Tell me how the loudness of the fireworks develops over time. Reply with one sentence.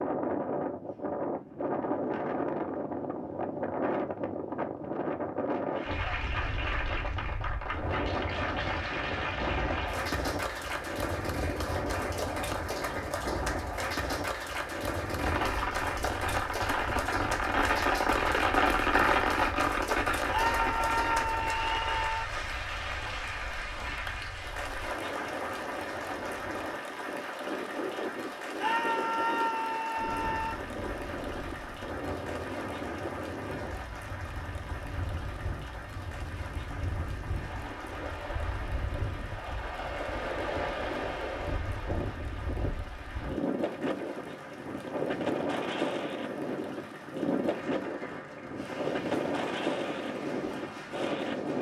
The volume of the fireworks goes up, then down.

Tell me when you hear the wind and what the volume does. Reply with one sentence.
The wind can be heard from 0.0 to 51.5 s, getting quieter then louder.